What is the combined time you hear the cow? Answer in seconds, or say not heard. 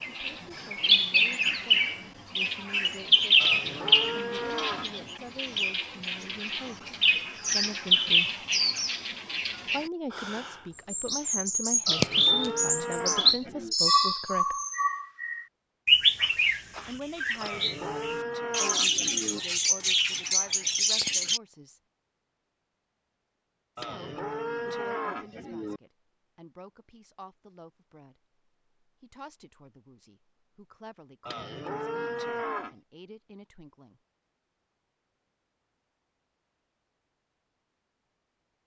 9 s.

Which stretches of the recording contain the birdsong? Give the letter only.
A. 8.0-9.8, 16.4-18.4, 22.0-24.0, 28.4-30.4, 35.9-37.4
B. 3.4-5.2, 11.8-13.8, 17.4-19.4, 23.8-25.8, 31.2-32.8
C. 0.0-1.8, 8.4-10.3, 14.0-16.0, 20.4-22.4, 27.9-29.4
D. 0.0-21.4
D.